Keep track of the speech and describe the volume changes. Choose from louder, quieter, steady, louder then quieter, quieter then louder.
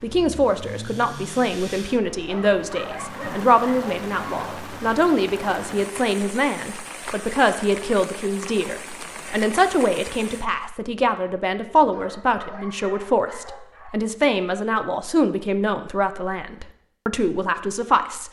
steady.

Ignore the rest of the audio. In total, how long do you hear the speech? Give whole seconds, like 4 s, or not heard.
18 s.